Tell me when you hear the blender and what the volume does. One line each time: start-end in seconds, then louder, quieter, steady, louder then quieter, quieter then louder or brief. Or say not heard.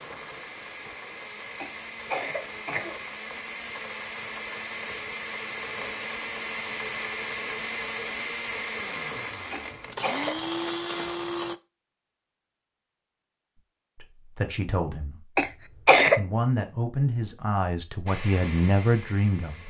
0.0-11.6 louder
18.1-19.6 brief.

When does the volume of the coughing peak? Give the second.
16 s.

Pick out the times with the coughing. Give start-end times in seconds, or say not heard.
1.6-3.0, 9.5-10.7, 15.3-16.2.